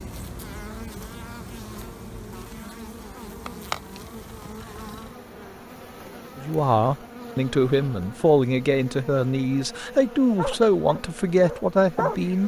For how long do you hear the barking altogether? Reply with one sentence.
The barking can be heard for 2 seconds in total.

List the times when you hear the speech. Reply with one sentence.
You can hear the speech from 6.4 to 12.4 s.